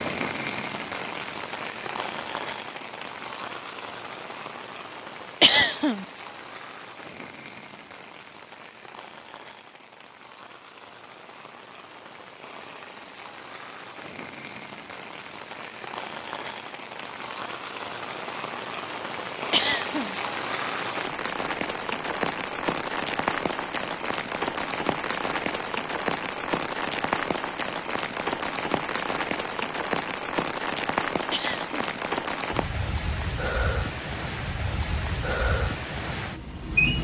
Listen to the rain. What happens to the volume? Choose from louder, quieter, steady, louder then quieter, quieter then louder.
quieter then louder.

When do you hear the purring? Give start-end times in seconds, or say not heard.
not heard.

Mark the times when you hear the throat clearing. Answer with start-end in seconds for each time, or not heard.
5.4-6.0, 19.5-20.1, 31.3-31.9.